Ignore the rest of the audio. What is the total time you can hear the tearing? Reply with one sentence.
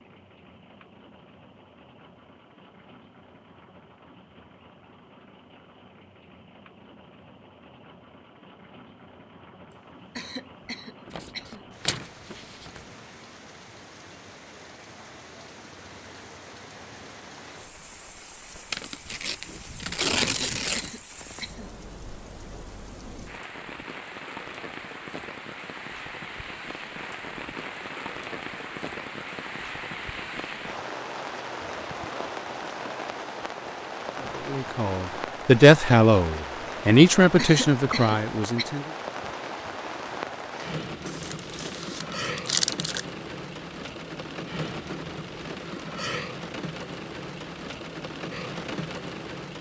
You can hear the tearing for 6 seconds altogether.